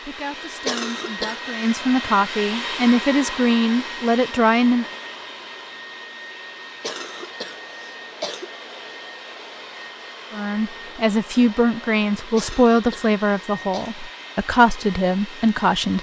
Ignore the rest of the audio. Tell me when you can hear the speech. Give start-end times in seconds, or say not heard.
0.0-4.8, 10.3-15.9.